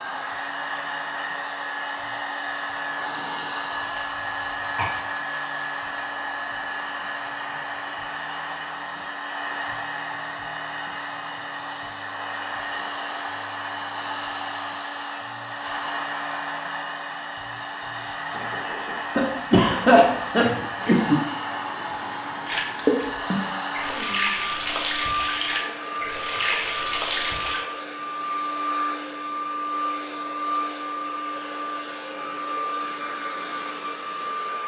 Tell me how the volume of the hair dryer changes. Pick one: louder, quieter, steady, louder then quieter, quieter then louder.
steady.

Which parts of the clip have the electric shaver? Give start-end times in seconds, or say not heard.
not heard.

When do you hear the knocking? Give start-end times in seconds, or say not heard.
18.3-19.0.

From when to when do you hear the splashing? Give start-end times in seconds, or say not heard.
22.4-27.6.